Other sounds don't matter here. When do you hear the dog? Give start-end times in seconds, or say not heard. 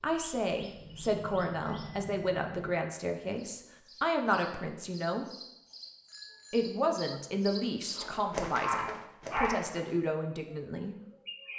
8.0-9.6.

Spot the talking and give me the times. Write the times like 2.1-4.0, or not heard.
0.0-5.2, 6.5-10.9.